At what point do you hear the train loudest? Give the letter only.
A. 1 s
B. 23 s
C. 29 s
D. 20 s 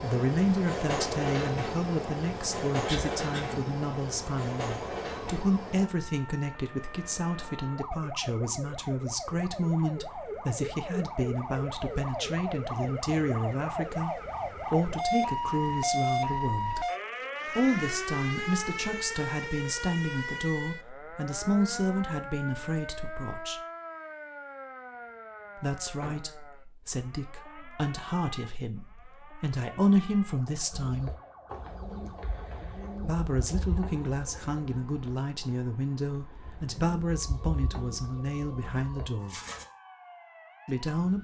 A.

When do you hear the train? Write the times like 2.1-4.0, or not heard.
0.0-5.9.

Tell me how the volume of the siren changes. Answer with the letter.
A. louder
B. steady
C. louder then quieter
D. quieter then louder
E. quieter
C.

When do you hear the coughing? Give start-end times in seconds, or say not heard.
2.8-3.6.